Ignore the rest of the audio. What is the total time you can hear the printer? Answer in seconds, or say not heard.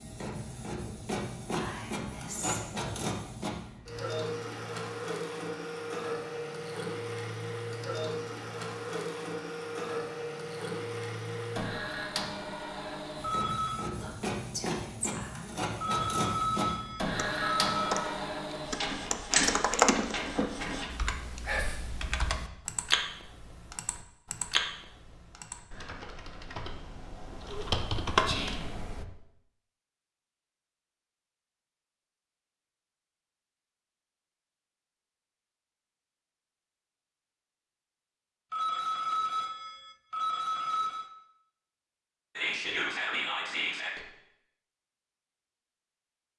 21 s.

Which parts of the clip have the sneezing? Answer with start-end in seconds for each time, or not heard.
not heard.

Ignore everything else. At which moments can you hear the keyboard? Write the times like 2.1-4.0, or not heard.
17.1-29.1.